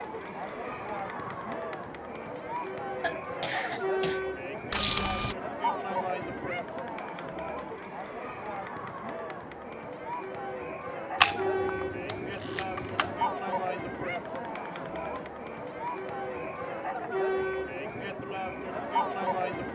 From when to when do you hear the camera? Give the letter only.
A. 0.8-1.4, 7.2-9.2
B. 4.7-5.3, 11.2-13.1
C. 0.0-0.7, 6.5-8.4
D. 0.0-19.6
B.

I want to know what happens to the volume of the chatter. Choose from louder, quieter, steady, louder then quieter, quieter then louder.
steady.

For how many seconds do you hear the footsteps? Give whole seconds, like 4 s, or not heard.
not heard.